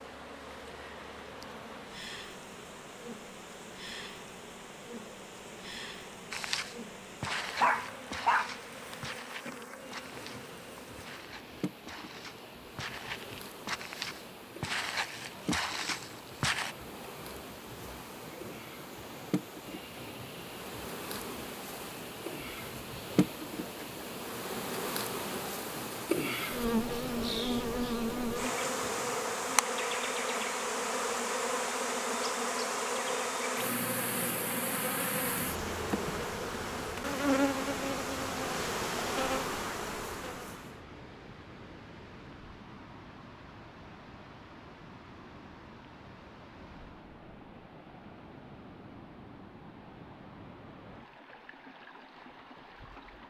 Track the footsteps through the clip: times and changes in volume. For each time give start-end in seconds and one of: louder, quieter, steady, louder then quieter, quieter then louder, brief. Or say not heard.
6.3-16.8 quieter then louder.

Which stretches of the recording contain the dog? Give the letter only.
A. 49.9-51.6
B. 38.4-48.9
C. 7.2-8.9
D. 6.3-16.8
C.